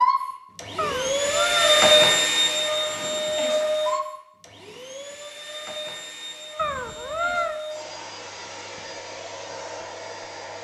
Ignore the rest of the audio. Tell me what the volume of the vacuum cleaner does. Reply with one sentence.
The loudness of the vacuum cleaner goes down.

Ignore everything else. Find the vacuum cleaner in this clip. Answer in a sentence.
You can hear the vacuum cleaner from 0.0 to 10.5 s.